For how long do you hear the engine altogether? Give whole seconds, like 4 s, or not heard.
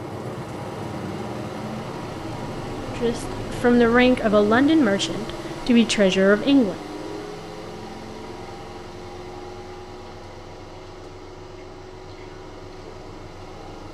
14 s.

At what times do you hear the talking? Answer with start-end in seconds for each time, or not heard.
3.0-6.8.